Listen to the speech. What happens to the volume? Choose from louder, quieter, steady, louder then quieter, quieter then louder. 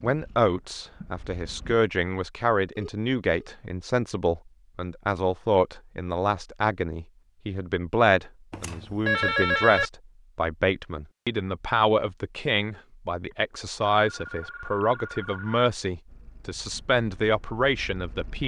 steady.